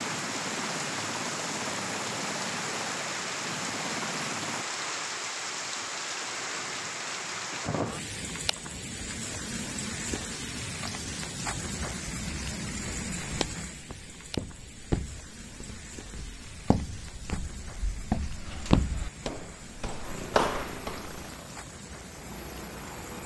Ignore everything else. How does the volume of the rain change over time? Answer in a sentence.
The volume of the rain goes down.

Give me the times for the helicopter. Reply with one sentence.
The helicopter can be heard from 0.0 to 4.7 s and from 20.0 to 23.2 s.